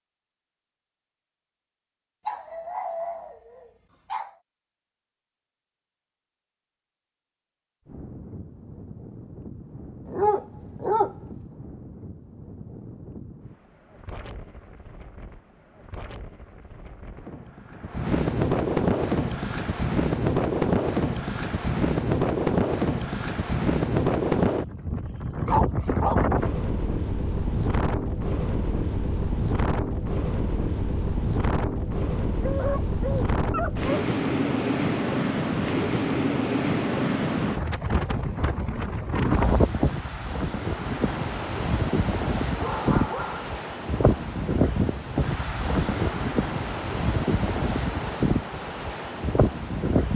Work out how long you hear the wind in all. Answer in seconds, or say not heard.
42 s.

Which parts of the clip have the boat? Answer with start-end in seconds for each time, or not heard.
not heard.